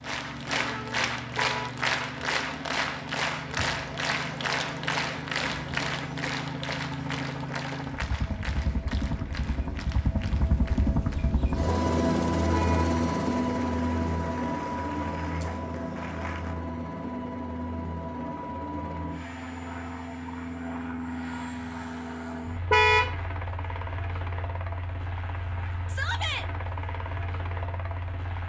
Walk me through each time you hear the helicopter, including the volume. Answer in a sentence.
The helicopter can be heard from 0.0 to 28.4 s, getting louder then quieter.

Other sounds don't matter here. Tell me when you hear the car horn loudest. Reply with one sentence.
The volume of the car horn peaks at 23 seconds.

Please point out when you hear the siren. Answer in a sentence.
The siren can't be heard in this clip.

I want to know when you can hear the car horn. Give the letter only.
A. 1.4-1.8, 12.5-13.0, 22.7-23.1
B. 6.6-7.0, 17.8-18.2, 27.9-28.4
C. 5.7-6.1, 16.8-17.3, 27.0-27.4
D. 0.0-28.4
A.